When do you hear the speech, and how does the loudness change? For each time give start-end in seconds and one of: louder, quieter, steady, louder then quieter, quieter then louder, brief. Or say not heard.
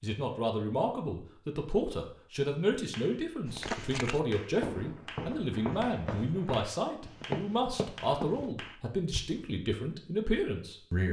0.0-11.0 steady.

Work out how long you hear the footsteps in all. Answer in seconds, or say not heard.
6 s.